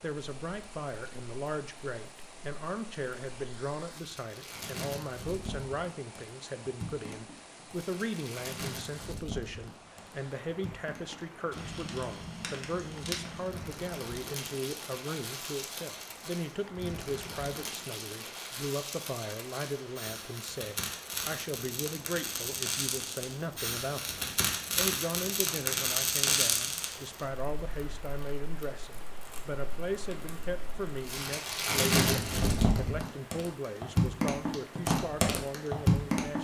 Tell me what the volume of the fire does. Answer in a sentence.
The volume of the fire goes up.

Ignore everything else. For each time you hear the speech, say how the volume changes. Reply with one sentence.
The speech can be heard from 0.0 to 36.3 s, at a steady volume.